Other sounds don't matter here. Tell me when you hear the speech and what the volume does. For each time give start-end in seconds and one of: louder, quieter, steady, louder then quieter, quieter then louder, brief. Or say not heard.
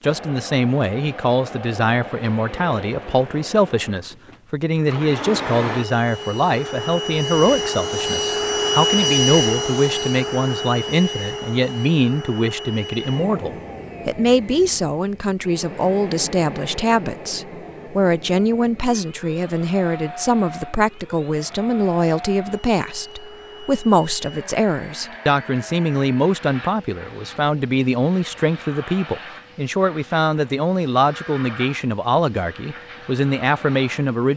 0.0-34.3 steady.